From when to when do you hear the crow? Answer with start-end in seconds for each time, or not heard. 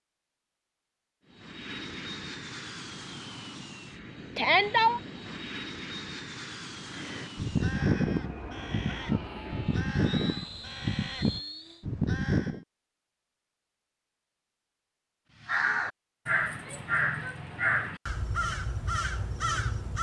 6.9-12.7, 15.4-19.9.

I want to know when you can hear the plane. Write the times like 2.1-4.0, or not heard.
1.2-11.8.